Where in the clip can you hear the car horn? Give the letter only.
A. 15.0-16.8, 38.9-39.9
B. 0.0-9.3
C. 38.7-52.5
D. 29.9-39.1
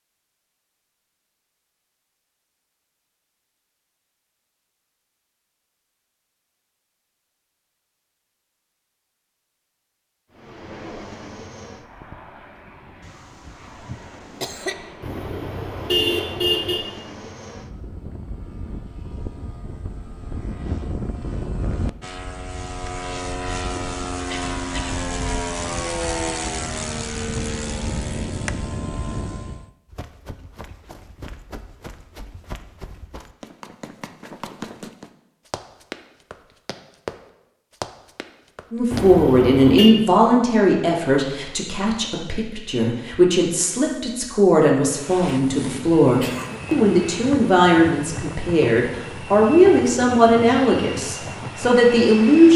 A.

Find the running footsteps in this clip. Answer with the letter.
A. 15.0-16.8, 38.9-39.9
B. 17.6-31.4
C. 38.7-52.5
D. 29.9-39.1
D.